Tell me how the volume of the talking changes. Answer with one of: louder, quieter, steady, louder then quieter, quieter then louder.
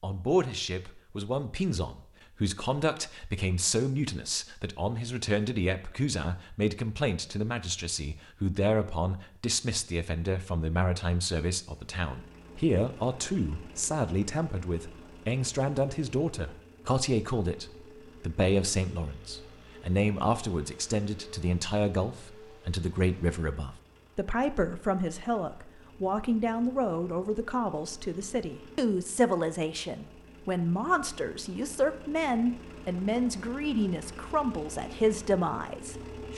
steady.